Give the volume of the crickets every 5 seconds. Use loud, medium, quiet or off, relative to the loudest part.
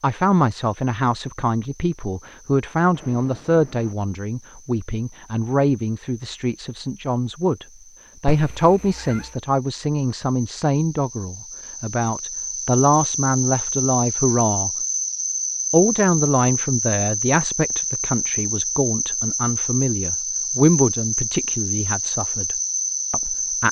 quiet, quiet, loud, loud, loud.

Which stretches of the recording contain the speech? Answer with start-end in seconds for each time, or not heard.
0.0-14.7, 15.7-23.6.